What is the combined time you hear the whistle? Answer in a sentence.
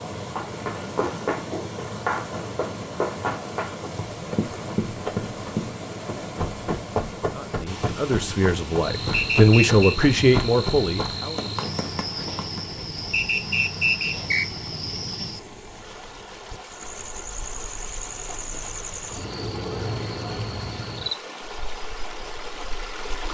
You can hear the whistle for 2 seconds altogether.